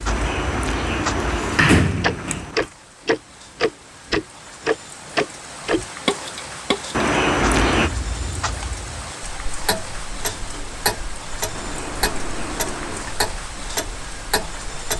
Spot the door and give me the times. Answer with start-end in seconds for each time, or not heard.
0.1-2.6, 6.9-7.9, 11.6-13.2.